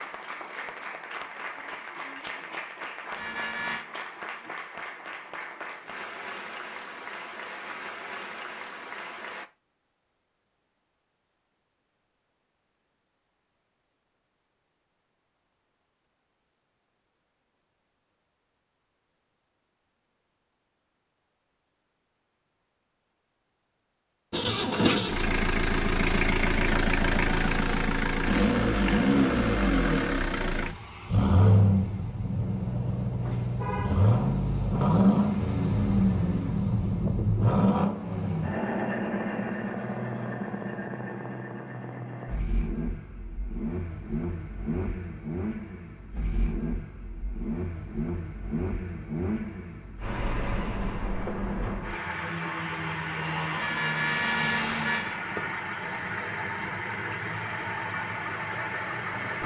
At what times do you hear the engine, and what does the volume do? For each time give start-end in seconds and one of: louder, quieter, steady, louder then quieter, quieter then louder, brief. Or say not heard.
24.3-59.4 quieter.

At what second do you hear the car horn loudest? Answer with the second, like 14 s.
54 s.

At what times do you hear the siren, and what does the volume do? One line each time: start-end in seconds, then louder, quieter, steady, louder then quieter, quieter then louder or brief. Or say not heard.
not heard.